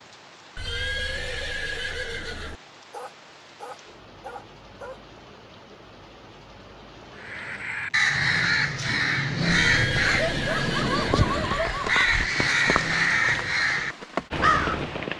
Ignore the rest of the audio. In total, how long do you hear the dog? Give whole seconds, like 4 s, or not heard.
4 s.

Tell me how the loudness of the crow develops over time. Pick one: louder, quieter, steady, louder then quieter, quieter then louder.
quieter then louder.